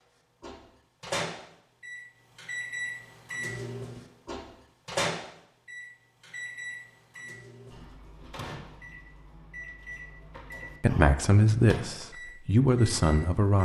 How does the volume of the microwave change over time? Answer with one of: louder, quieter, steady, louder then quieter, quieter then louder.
quieter.